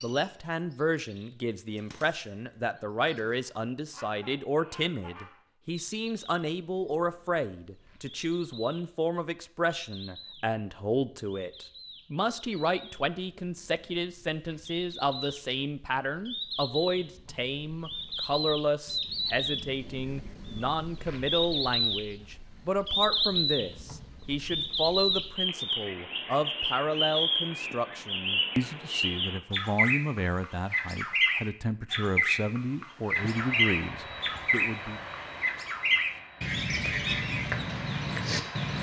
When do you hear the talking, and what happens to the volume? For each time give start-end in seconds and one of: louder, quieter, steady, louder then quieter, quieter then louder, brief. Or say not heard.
0.0-35.0 steady.